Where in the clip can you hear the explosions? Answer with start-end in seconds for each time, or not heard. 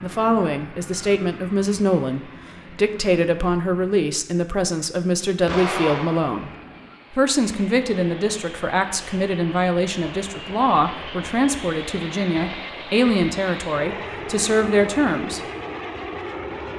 5.5-6.5.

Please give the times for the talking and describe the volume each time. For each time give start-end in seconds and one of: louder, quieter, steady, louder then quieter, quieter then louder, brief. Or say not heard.
0.0-6.5 steady
7.1-15.4 steady.